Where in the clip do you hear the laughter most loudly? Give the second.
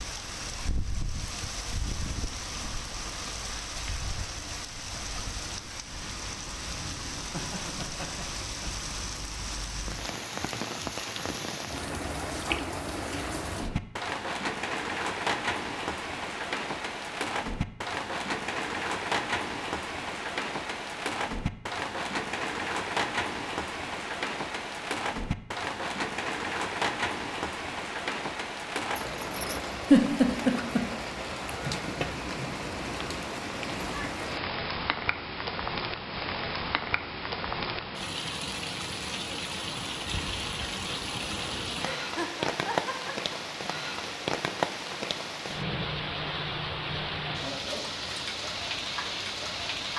30 s.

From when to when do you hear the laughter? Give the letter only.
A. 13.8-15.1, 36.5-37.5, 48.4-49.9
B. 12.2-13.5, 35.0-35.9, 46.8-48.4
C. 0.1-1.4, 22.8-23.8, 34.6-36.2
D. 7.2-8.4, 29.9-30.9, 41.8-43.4
D.